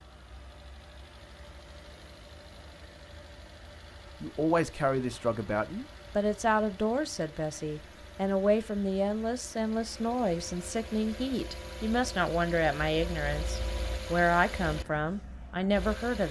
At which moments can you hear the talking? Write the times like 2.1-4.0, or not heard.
4.2-16.2.